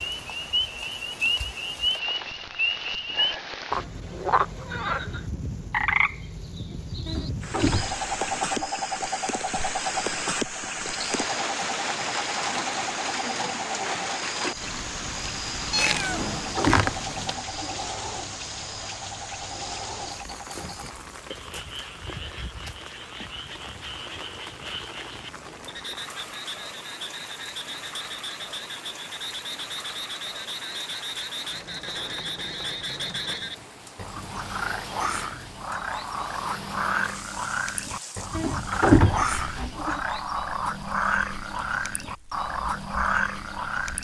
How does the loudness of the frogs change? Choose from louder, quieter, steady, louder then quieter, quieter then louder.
quieter then louder.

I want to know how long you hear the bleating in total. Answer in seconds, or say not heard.
5 s.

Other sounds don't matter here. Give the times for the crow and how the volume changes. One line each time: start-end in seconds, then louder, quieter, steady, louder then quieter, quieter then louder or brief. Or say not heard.
not heard.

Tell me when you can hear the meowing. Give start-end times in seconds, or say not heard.
15.7-17.4.